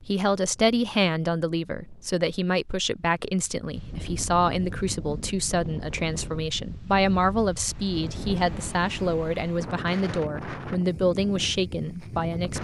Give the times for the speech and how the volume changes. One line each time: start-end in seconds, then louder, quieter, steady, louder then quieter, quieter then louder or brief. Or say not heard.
0.0-12.5 steady.